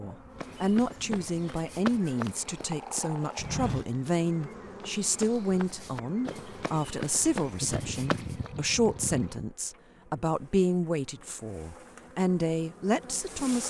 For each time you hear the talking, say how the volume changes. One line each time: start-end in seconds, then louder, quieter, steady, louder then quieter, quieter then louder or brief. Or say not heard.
0.0-13.6 steady.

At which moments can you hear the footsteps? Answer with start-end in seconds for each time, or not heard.
0.3-8.5.